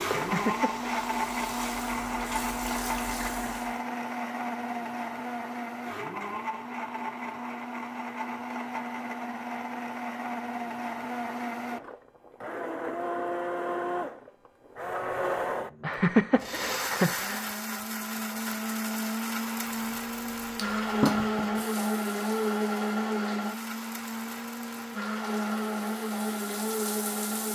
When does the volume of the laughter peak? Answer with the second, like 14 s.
16 s.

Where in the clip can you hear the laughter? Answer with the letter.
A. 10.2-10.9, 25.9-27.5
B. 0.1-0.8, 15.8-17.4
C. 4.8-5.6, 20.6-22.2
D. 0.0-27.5
B.